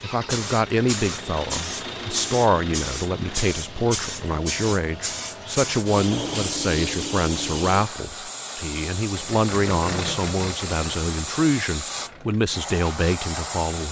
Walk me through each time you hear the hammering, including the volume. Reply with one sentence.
You can't hear the hammering here.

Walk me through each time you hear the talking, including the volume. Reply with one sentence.
The talking can be heard from 0.0 to 13.8 s, at a steady volume.